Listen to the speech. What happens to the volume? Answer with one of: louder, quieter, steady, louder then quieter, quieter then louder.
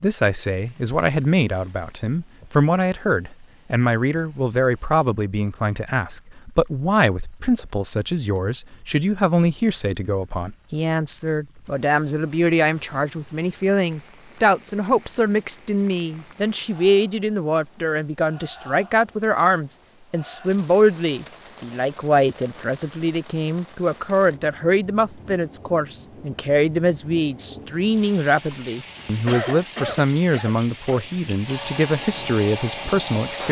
steady.